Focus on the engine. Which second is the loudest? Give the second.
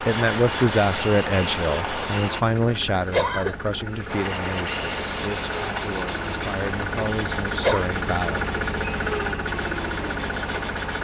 9 s.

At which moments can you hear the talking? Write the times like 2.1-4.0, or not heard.
0.0-8.4.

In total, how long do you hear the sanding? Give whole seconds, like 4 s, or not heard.
9 s.